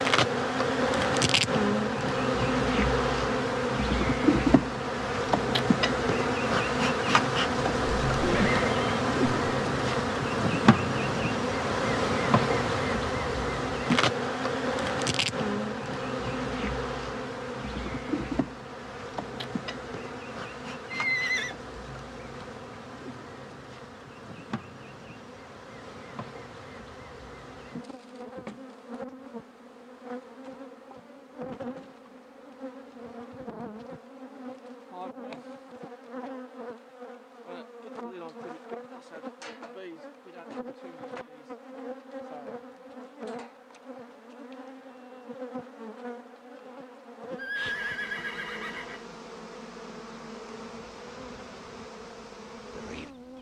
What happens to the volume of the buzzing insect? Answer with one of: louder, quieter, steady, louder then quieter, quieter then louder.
quieter.